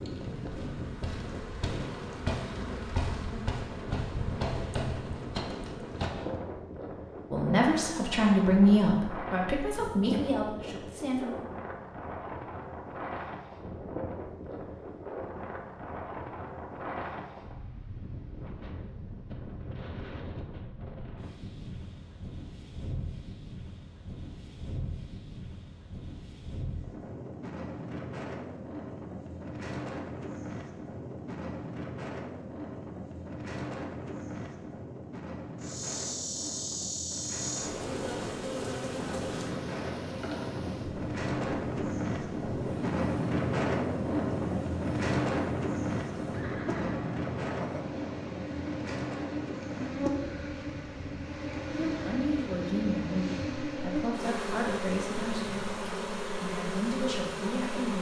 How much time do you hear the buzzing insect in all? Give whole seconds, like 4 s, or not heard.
29 s.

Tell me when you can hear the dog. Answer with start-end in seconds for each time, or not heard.
not heard.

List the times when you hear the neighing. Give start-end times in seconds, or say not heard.
46.3-47.9.